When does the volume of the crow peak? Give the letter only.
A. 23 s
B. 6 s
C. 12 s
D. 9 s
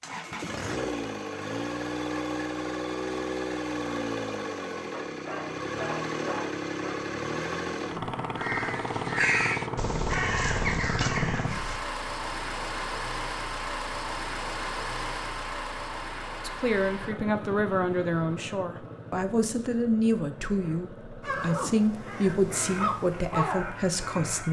D.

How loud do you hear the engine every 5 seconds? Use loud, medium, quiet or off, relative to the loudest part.
loud, loud, loud, medium, quiet.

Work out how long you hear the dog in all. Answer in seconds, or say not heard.
2 s.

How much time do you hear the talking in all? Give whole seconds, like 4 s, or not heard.
8 s.